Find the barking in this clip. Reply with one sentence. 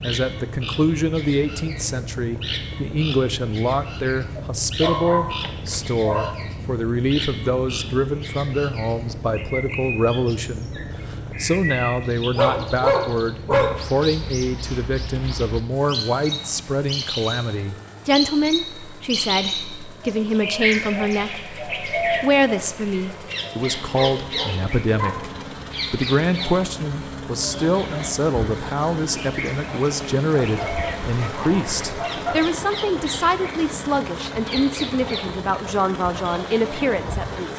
The barking can be heard from 4.3 to 6.3 s, from 12.3 to 13.8 s, from 23.9 to 25.4 s and from 30.4 to 32.5 s.